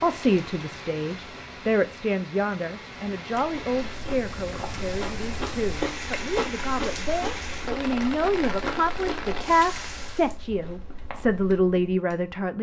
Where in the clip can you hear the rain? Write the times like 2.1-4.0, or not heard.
0.0-10.3.